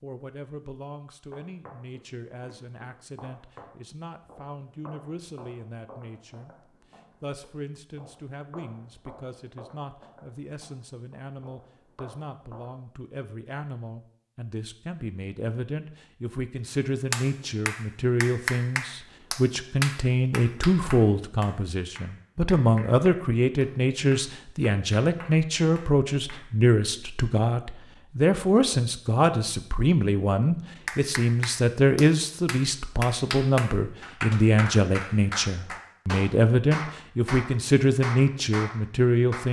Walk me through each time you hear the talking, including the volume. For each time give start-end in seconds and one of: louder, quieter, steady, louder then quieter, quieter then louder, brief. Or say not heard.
0.0-39.4 louder.